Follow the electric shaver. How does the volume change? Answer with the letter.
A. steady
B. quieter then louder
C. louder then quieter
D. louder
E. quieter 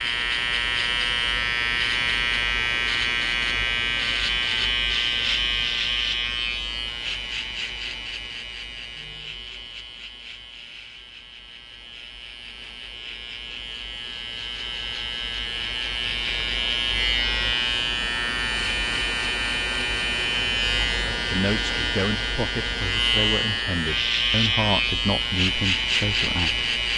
B.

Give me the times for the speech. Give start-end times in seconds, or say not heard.
21.1-26.6.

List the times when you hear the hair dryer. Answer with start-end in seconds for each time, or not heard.
not heard.